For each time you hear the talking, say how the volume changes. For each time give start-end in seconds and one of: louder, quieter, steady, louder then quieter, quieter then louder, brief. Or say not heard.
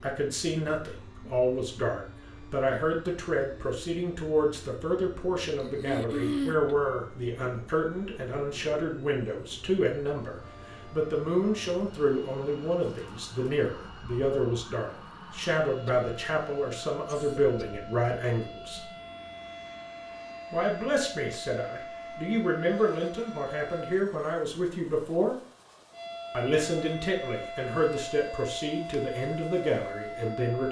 0.0-18.8 steady
20.5-25.4 steady
26.3-30.6 steady.